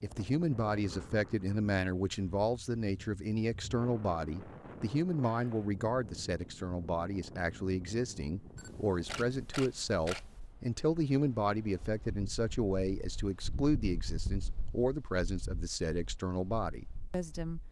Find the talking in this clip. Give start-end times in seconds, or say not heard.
0.0-17.6.